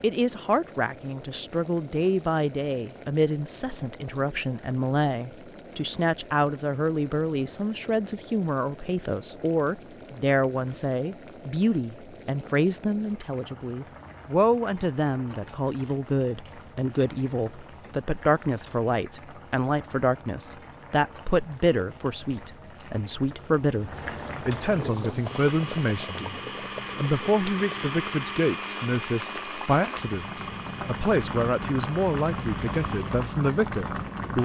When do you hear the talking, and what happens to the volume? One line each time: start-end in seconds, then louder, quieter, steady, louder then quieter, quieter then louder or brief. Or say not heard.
0.0-26.2 steady
26.9-34.4 steady.